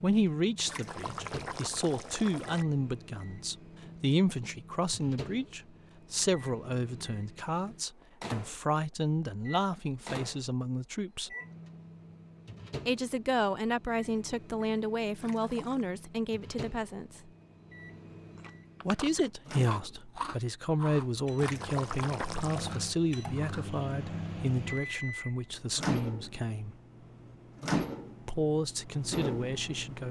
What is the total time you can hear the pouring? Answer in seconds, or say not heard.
4 s.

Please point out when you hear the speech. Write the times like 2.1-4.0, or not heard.
0.0-11.3, 12.8-17.3, 18.9-26.8, 28.2-30.0.